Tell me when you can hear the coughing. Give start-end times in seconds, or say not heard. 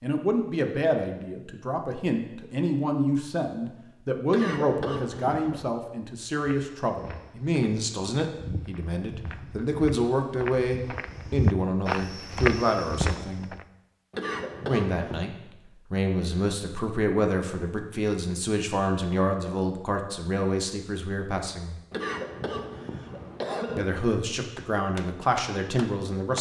4.3-5.7, 14.1-15.2, 21.9-23.9.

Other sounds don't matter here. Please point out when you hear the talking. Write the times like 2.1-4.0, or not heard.
0.0-13.5, 14.7-15.3, 15.9-21.8, 23.8-26.3.